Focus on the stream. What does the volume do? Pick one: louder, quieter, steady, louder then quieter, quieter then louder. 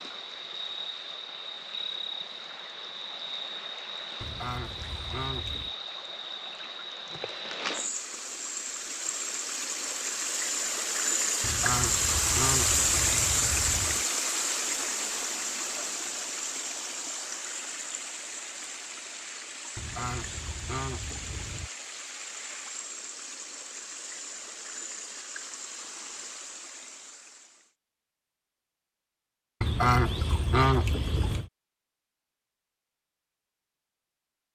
louder then quieter.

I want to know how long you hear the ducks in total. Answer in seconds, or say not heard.
8 s.